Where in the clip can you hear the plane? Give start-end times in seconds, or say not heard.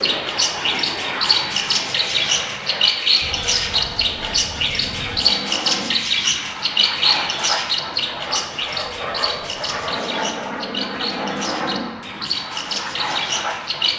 0.0-13.9.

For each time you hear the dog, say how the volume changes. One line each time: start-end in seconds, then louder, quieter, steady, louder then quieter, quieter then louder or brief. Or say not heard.
not heard.